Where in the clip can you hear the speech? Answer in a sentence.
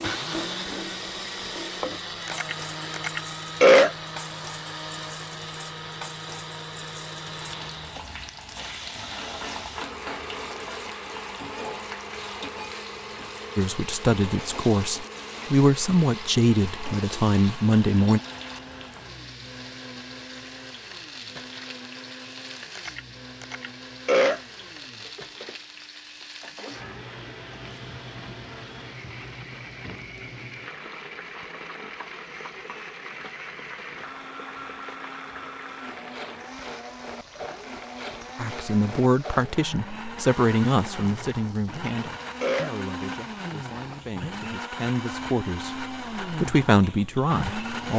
You can hear the speech from 13.6 to 18.2 s and from 38.4 to 47.9 s.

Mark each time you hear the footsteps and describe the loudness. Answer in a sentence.
You can't hear the footsteps here.